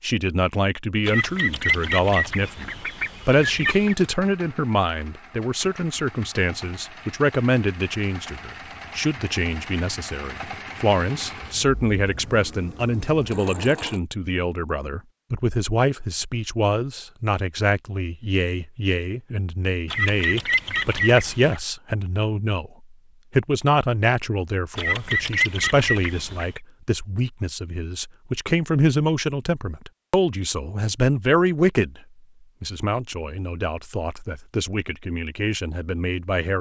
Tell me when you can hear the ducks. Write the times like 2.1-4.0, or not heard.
1.1-4.0, 19.9-21.6, 24.8-26.6.